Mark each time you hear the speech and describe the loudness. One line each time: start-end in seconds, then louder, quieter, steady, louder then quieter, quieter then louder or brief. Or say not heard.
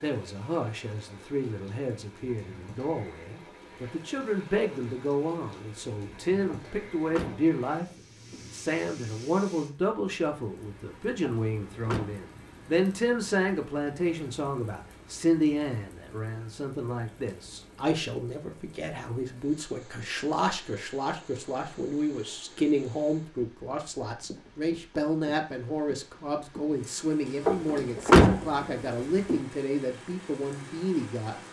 0.0-31.4 steady.